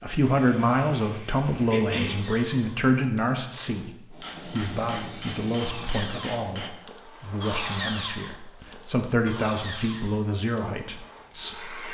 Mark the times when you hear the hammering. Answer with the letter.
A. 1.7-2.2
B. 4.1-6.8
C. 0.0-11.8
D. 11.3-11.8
B.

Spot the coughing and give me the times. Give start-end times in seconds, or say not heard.
1.7-2.2.